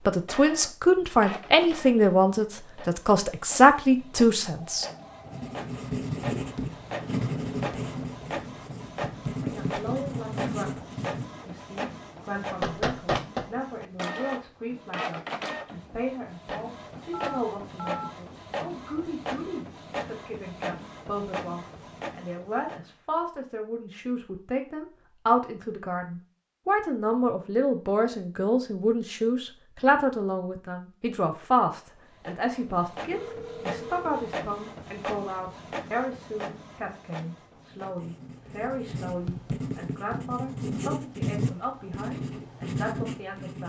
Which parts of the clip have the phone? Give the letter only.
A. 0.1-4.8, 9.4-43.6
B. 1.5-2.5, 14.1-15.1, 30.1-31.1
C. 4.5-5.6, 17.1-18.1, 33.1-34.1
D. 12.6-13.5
C.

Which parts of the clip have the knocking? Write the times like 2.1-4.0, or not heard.
12.6-13.5.